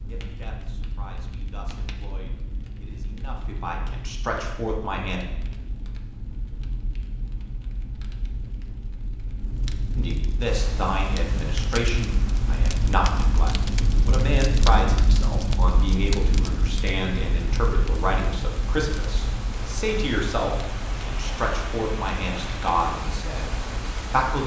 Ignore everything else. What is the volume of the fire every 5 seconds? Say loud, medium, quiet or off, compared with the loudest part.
medium, medium, loud, loud, medium.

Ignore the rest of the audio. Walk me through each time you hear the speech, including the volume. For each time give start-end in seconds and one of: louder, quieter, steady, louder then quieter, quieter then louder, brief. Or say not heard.
0.1-5.2 louder
9.9-24.4 steady.